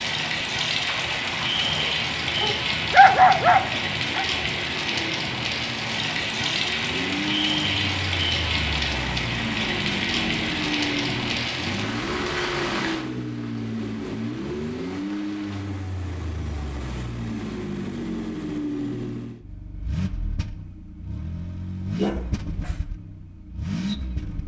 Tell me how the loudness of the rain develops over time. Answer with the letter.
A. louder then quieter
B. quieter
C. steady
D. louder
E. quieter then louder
B.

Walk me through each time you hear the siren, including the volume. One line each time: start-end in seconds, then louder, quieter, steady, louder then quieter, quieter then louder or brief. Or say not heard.
not heard.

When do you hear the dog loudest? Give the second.
3 s.